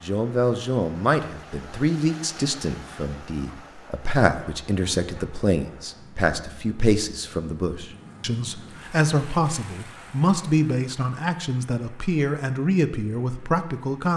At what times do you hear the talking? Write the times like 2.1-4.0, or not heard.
0.0-14.1.